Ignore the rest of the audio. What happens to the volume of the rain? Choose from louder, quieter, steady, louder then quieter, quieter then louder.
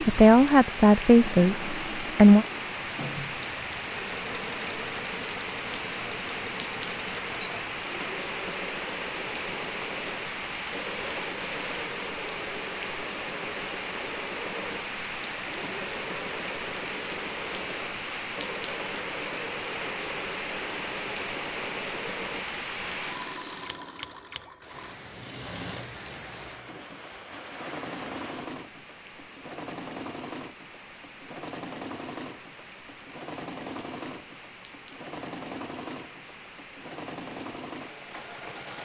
quieter.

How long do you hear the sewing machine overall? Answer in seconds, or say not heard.
39 s.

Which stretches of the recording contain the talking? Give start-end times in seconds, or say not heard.
0.0-2.5.